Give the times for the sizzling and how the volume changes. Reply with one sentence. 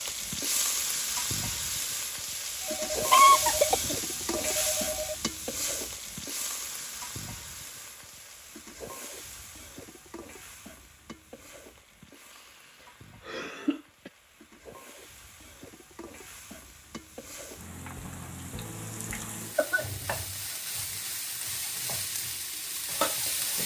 You can hear the sizzling from 0.0 to 23.6 s, getting quieter then louder.